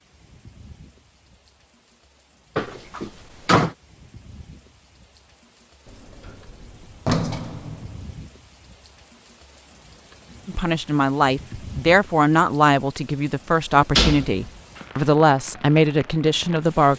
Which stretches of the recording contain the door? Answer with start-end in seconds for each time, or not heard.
2.5-3.8, 5.8-8.2, 13.9-14.4.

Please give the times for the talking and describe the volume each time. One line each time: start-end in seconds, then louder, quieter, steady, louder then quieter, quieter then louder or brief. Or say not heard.
10.4-16.9 steady.